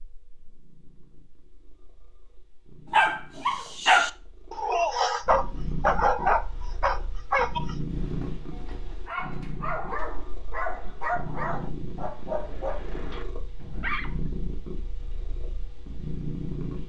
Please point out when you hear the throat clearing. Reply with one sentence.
The throat clearing can't be heard in this clip.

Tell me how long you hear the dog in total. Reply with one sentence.
The dog can be heard for 11 seconds in total.